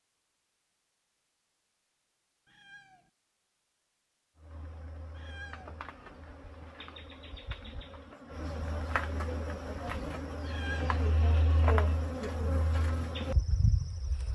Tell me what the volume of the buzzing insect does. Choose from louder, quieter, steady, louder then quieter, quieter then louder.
louder.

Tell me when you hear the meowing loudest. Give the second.
11 s.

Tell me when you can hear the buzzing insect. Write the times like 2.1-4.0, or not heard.
4.4-14.3.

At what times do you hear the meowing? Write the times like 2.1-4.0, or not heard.
2.5-3.1, 5.2-5.8, 10.4-11.0.